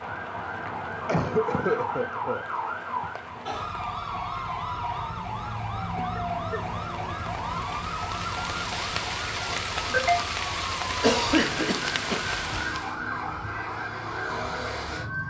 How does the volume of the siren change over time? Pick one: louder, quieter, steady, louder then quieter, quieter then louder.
steady.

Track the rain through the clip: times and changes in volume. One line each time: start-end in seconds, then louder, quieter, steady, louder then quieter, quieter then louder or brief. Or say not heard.
0.0-13.0 louder.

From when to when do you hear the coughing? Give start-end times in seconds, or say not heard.
1.1-2.5, 6.0-7.8, 11.0-12.2.